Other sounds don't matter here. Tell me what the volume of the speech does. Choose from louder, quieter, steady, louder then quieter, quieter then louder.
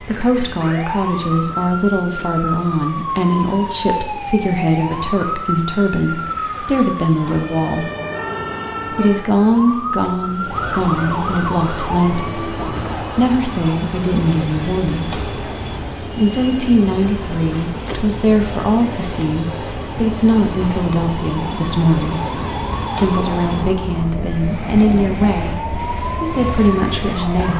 steady.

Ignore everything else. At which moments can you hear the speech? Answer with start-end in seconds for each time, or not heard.
0.0-7.9, 8.9-15.2, 16.1-22.2, 22.9-27.5.